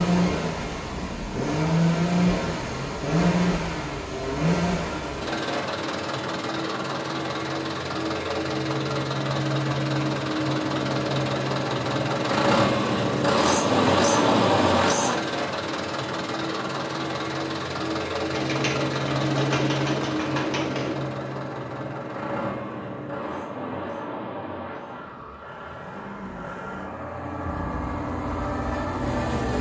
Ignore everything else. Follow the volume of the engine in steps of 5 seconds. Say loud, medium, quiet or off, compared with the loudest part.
loud, medium, loud, medium, medium, medium.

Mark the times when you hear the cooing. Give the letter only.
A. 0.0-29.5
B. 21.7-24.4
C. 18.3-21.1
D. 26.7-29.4
C.